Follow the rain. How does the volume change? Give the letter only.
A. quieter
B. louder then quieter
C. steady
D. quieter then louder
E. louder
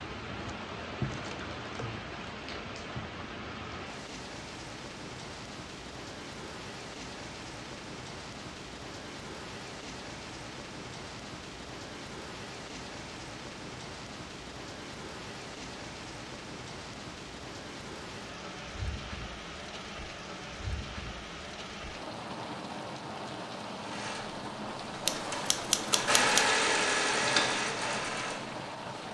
C.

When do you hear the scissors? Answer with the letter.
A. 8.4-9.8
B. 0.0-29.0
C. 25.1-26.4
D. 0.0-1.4
C.